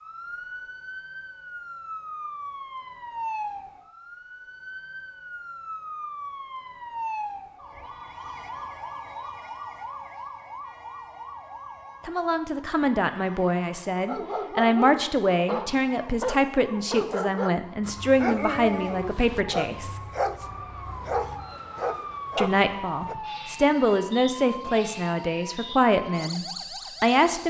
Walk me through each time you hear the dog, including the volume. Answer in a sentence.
You can hear the dog from 14.1 to 23.1 s, at a steady volume.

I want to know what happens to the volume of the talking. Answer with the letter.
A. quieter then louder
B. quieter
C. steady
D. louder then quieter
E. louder
C.